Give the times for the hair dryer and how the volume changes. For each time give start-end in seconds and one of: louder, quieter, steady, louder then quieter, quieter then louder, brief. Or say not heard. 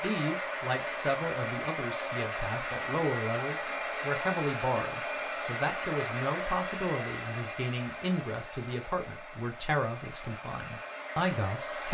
0.0-11.8 quieter.